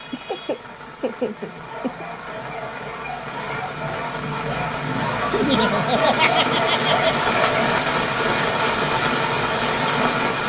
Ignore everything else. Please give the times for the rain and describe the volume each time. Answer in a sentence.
You can hear the rain from 0.0 to 10.4 s, getting louder.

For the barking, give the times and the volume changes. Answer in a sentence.
You can hear the barking from 1.6 to 7.8 s, getting louder.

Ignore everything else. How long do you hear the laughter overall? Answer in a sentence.
You can hear the laughter for 4 seconds altogether.